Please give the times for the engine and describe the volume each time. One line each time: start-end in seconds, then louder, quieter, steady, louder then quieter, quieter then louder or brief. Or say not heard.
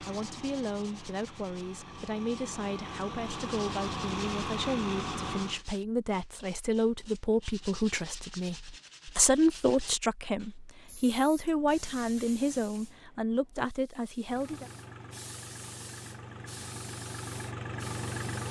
0.0-5.7 louder
14.2-18.4 louder.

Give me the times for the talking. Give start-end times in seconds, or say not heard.
0.0-14.7.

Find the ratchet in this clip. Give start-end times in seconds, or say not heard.
not heard.